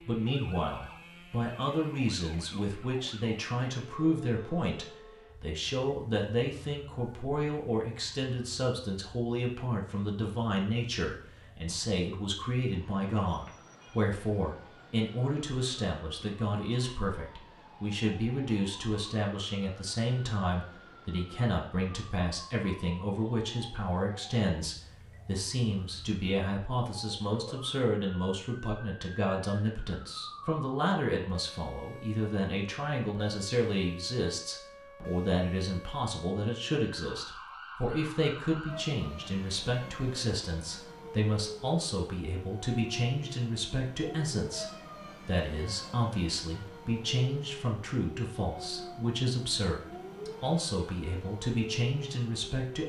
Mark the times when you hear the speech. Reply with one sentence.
You can hear the speech from 0.0 to 52.8 s.